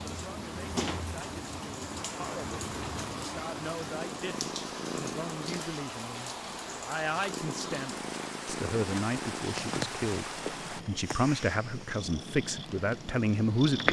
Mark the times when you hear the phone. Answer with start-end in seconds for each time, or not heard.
not heard.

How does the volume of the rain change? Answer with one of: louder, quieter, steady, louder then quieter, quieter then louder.
steady.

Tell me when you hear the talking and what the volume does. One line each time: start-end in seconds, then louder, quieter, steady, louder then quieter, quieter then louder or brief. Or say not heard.
0.0-13.8 louder.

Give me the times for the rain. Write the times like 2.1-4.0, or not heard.
0.0-10.8.